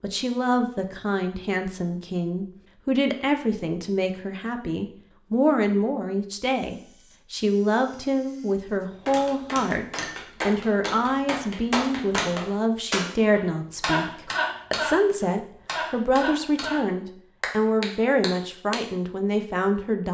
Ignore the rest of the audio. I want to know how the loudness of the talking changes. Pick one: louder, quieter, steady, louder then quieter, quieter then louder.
steady.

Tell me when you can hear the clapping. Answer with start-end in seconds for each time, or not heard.
9.1-18.8.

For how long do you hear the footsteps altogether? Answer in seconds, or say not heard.
not heard.